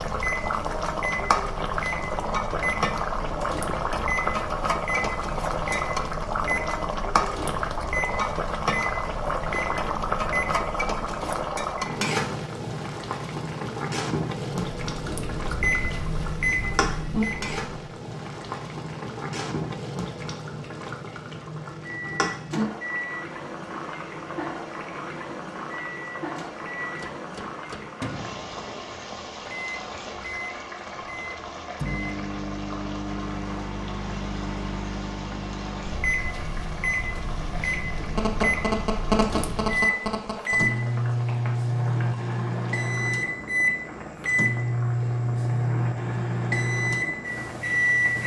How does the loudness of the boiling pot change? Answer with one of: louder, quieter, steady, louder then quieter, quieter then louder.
quieter.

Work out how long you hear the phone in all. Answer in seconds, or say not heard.
3 s.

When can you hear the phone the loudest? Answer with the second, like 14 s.
39 s.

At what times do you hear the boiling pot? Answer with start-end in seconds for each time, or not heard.
0.0-48.2.